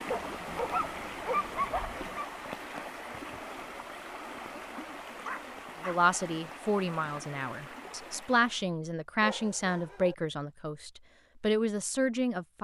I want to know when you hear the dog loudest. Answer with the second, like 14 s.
1 s.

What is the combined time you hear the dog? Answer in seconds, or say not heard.
4 s.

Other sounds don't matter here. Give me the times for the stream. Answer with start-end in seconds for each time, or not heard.
0.0-8.7.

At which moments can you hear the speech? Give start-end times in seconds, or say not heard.
5.8-12.5.